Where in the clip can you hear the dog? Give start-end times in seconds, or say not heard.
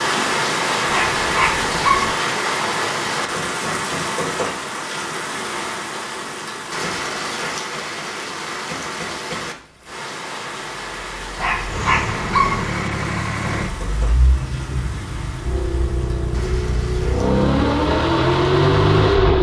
0.8-2.1, 11.3-12.7.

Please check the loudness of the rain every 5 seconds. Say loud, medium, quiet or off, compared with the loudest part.
loud, medium, medium, quiet.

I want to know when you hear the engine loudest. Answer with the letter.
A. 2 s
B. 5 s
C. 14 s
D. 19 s
D.